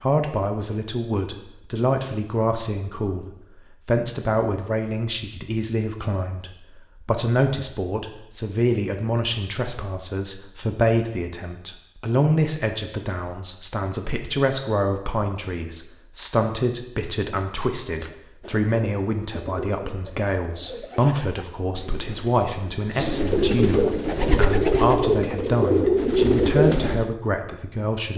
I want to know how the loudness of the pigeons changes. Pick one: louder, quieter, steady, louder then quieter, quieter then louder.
louder.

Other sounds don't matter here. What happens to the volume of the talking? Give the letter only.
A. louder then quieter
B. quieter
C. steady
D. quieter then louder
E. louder
C.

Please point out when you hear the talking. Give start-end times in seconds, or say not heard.
0.0-3.2, 3.9-28.1.